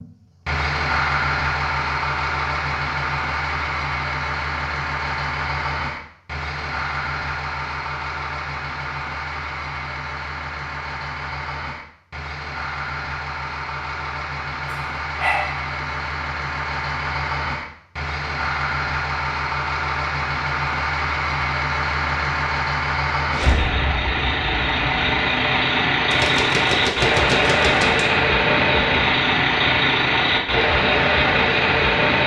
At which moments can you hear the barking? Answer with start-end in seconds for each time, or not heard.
14.7-15.7.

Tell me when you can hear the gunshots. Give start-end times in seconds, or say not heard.
26.1-28.1.